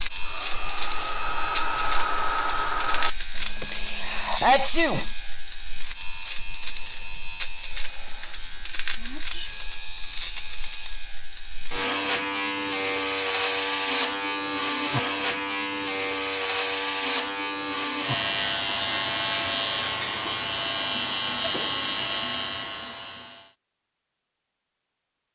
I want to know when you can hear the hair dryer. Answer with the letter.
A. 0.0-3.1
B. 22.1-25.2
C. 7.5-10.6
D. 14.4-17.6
A.